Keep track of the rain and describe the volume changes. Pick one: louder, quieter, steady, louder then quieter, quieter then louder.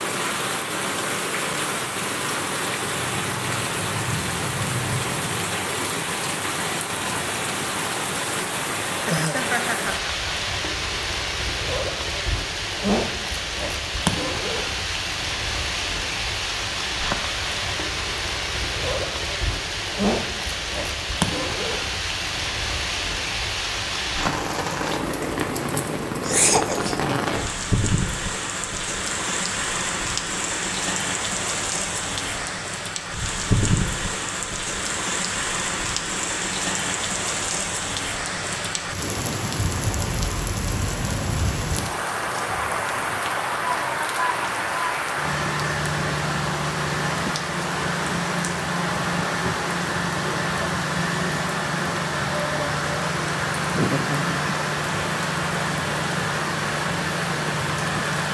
steady.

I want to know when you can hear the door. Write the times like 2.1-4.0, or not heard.
not heard.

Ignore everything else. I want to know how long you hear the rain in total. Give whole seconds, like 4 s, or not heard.
58 s.